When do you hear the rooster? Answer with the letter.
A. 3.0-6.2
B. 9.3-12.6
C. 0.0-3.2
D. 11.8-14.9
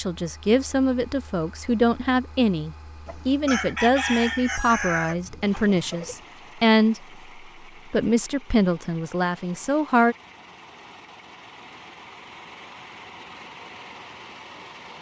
A.